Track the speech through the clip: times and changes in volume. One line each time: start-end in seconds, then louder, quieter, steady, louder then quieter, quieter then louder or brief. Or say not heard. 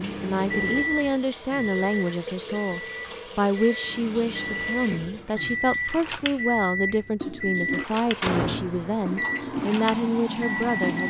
0.1-11.0 steady.